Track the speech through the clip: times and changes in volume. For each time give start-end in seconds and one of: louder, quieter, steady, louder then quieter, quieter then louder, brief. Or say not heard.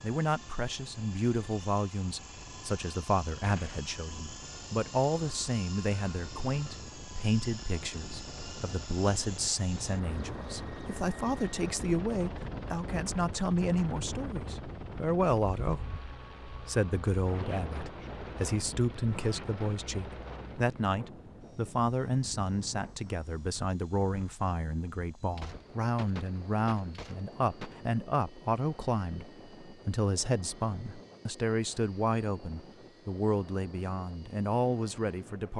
0.0-35.5 steady.